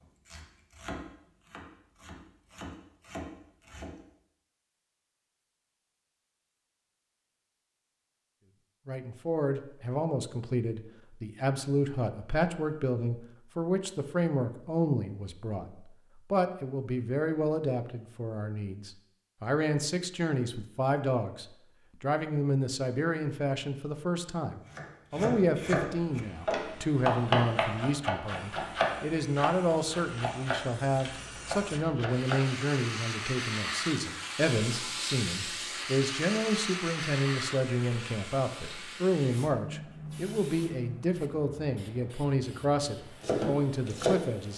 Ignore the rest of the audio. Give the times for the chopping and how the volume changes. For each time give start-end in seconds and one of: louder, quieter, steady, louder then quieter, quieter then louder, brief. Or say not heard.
0.0-4.0 quieter then louder
24.6-32.5 louder then quieter
43.2-44.5 brief.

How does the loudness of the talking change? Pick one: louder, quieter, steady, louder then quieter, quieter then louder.
steady.